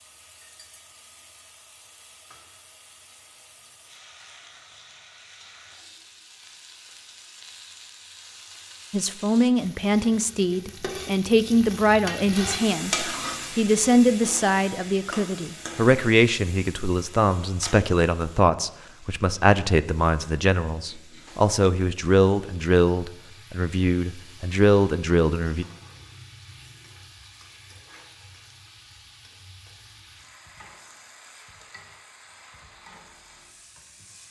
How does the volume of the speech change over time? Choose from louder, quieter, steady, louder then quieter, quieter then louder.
steady.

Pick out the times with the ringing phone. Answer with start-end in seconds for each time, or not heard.
not heard.